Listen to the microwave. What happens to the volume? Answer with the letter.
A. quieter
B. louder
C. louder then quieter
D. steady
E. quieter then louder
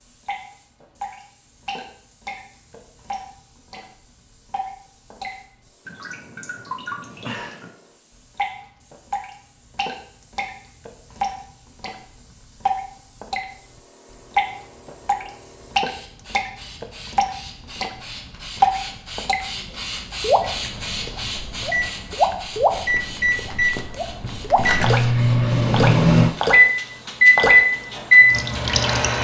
B.